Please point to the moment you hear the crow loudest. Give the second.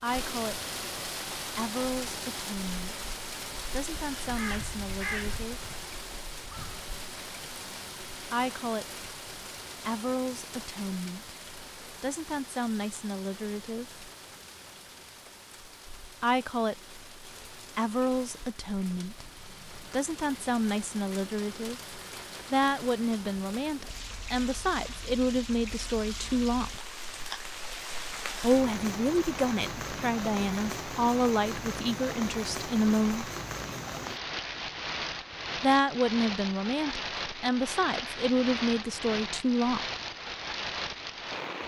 5 s.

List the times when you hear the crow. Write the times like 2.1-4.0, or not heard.
4.0-6.8.